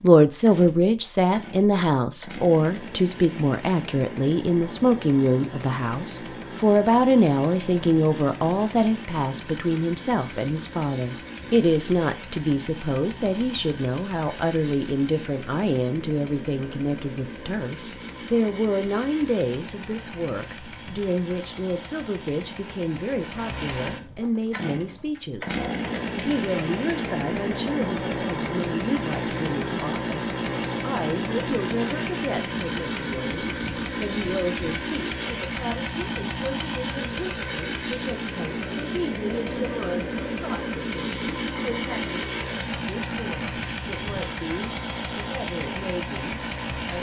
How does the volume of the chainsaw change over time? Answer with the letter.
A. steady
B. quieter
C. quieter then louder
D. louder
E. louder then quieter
D.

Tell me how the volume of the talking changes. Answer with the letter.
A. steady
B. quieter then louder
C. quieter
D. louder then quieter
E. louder
C.